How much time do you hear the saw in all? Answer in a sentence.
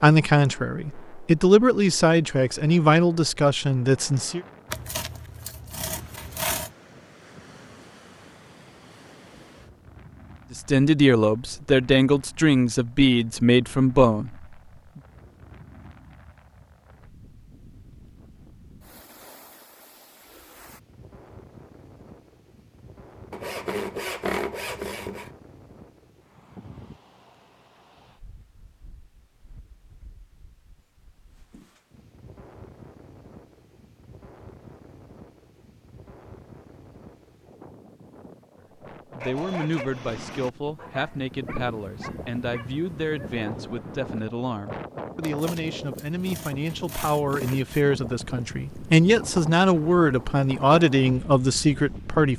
You can hear the saw for 7 seconds altogether.